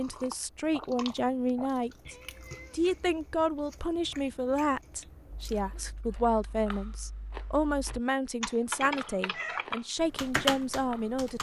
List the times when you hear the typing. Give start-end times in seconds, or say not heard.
5.3-11.3.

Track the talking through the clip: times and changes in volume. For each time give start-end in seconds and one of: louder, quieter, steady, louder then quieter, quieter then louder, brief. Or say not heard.
0.0-11.3 steady.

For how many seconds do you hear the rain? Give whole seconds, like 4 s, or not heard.
not heard.